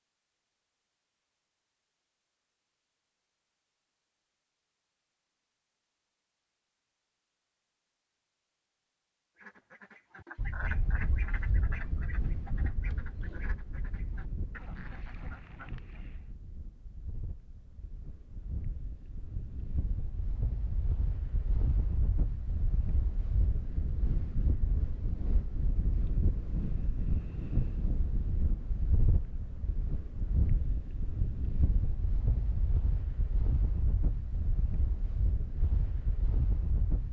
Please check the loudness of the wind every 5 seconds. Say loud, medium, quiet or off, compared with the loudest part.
off, off, medium, medium, loud, loud, loud, loud.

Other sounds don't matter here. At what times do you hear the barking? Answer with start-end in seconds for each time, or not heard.
not heard.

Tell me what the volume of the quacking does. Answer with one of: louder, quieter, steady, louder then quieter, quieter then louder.
quieter.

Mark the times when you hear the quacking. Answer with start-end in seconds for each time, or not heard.
9.3-16.4.